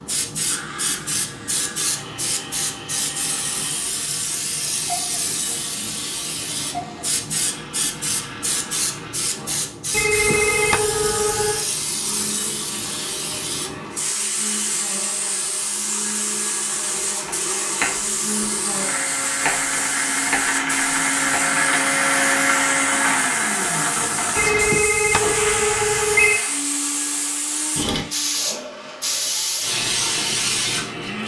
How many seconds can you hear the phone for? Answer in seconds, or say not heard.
4 s.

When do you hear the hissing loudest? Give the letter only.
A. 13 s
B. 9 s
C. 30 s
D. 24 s
C.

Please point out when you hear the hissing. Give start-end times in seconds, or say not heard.
0.0-31.2.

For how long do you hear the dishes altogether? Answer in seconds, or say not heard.
not heard.